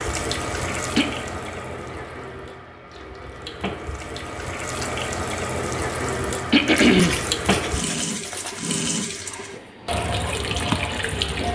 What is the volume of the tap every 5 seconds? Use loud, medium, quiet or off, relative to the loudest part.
medium, loud, loud.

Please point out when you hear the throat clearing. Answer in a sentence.
The throat clearing can be heard from 0.5 to 1.1 s and from 6.2 to 7.2 s.